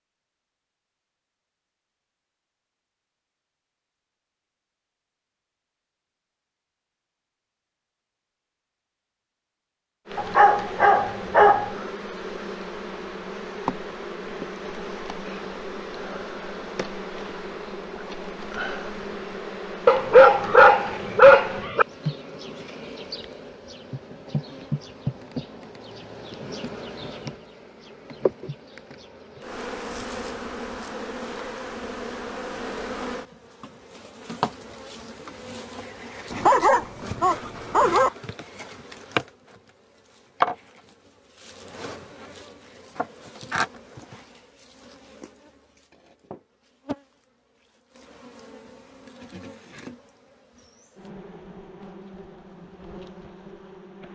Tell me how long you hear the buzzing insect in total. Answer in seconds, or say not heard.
44 s.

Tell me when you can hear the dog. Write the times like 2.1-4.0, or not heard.
10.2-11.7, 19.9-21.9, 36.3-38.1.